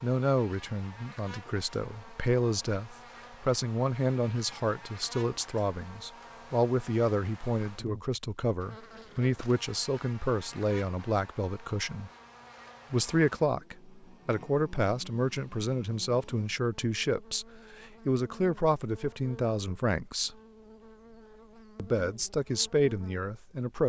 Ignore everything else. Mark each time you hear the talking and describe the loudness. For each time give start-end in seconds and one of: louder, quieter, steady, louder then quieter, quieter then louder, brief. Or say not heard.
0.0-12.1 steady
12.9-20.4 steady
21.8-23.8 brief.